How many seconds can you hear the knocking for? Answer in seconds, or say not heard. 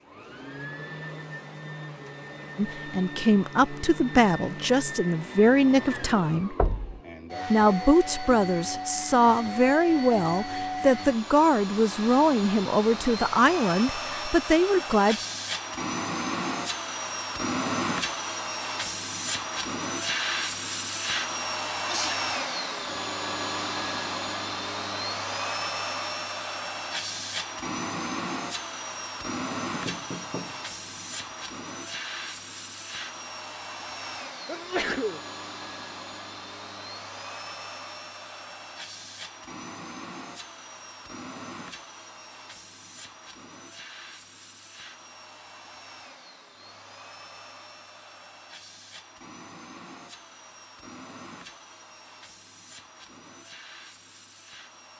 2 s.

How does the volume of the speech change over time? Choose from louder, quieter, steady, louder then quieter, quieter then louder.
steady.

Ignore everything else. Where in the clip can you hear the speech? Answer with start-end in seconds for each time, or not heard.
2.5-6.5, 7.5-15.2.